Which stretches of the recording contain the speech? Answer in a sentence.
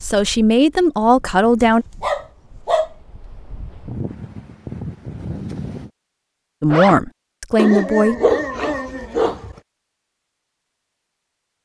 The speech can be heard from 0.0 to 1.9 s and from 6.6 to 8.2 s.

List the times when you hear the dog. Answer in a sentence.
You can hear the dog from 1.6 to 2.9 s and from 7.5 to 9.6 s.